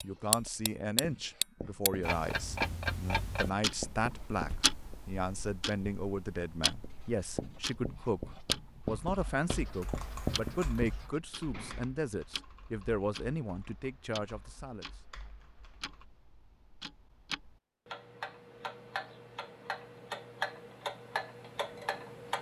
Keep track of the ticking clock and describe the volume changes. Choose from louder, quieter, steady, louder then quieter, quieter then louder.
quieter then louder.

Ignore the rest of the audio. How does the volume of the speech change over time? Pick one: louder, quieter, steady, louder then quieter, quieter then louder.
steady.